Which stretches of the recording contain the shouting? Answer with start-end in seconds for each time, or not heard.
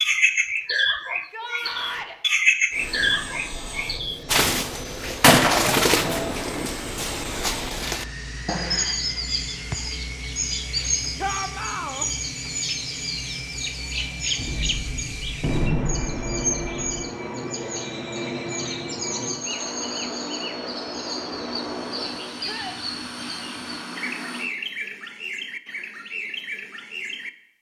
1.1-2.1, 11.2-12.1, 22.4-22.8.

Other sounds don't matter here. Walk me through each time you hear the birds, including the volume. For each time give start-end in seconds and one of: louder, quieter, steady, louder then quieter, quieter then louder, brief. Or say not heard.
0.0-27.3 quieter.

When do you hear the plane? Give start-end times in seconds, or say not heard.
2.7-24.5.